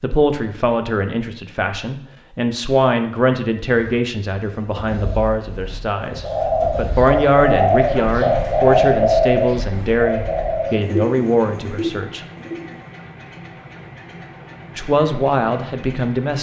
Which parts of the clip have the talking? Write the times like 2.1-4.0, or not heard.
0.0-12.2, 14.8-16.3.